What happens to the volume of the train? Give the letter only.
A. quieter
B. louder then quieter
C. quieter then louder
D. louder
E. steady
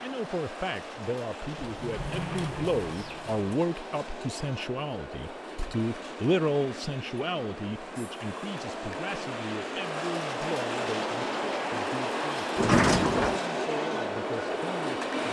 D.